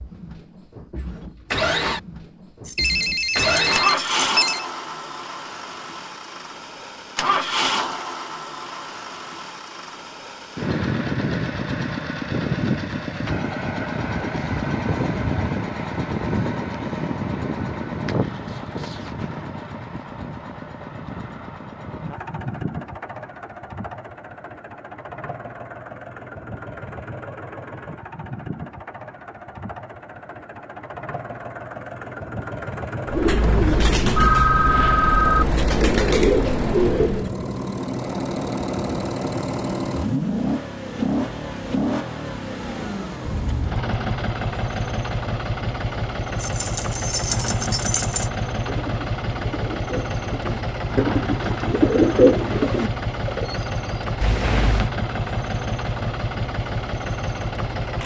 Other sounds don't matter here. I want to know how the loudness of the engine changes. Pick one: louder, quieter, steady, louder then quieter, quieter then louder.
quieter then louder.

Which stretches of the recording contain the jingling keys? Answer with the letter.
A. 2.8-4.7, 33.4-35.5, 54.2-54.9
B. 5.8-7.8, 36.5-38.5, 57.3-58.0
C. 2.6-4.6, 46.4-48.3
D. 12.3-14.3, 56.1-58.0
C.